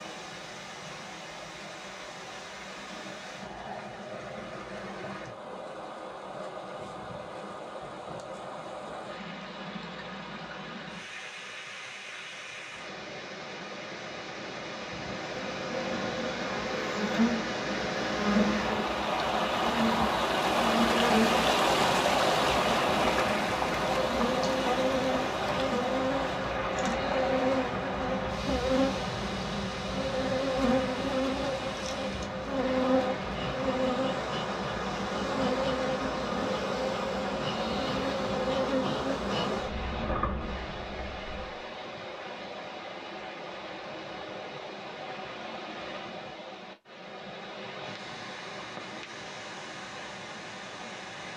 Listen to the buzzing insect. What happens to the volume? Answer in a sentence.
The loudness of the buzzing insect stays about the same.